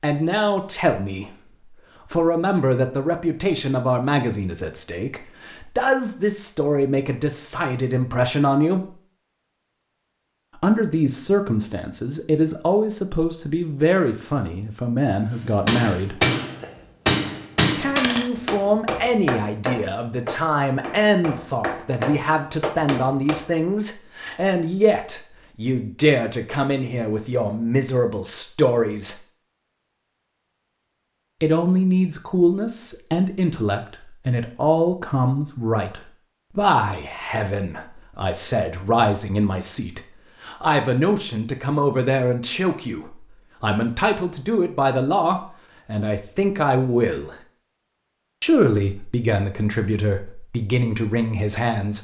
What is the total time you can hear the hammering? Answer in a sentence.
You can hear the hammering for 8 seconds altogether.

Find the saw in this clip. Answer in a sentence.
The saw can't be heard in this clip.